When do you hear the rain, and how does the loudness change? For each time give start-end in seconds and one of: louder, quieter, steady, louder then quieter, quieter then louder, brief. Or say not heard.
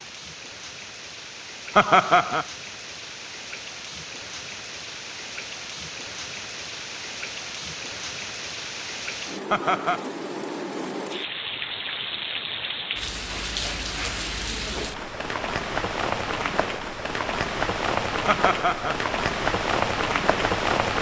0.0-20.9 louder.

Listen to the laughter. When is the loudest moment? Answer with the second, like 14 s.
2 s.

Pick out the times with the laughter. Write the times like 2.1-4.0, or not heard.
1.8-2.5, 9.5-10.1, 18.2-18.9.